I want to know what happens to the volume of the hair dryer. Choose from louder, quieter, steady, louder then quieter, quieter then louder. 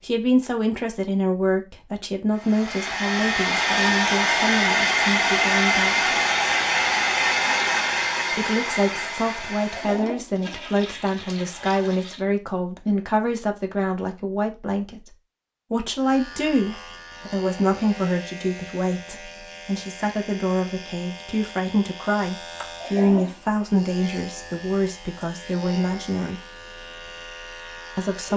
quieter.